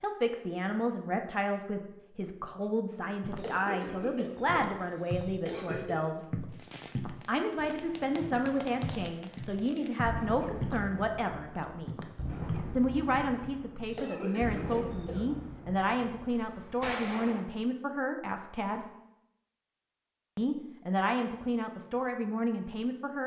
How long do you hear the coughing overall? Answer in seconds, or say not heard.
4 s.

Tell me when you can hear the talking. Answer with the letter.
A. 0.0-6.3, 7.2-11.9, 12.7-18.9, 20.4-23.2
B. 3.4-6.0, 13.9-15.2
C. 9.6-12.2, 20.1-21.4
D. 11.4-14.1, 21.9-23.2
A.